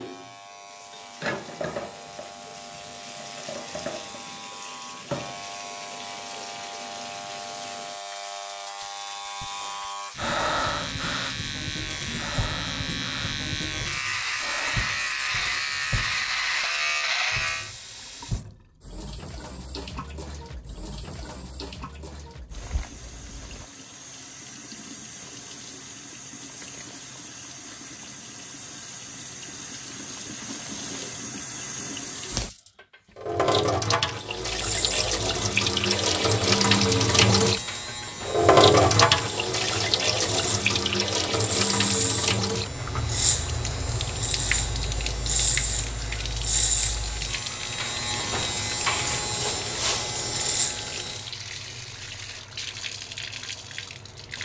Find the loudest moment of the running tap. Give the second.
39 s.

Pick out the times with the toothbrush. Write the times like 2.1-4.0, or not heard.
not heard.